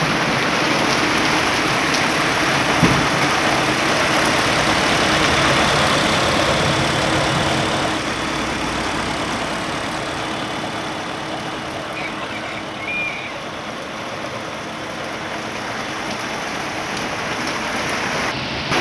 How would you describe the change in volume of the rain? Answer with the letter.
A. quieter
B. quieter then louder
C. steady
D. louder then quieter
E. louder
B.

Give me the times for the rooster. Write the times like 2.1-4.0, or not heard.
11.9-13.4.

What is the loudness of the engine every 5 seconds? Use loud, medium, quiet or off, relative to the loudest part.
loud, loud, medium, medium.